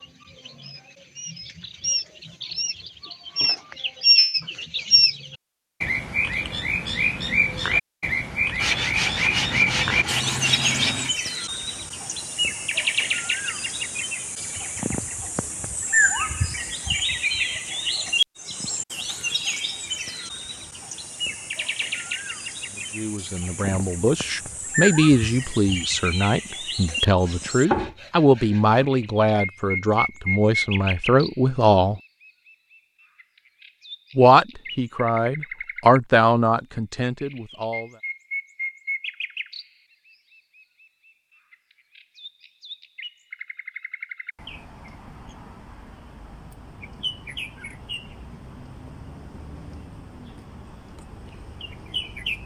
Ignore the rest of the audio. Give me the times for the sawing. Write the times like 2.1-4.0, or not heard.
8.6-11.1, 26.9-28.9.